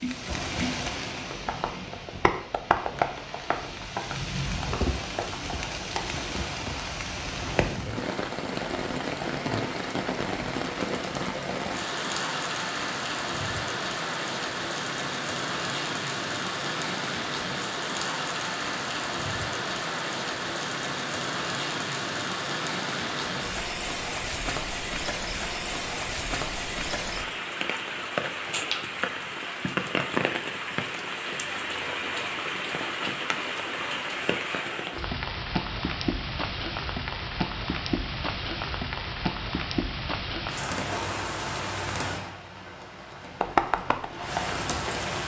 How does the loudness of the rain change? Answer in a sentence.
The loudness of the rain stays about the same.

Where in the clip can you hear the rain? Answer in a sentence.
You can hear the rain from 0.0 to 45.2 s.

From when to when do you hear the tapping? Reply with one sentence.
You can hear the tapping from 0.0 to 6.0 s and from 43.4 to 45.0 s.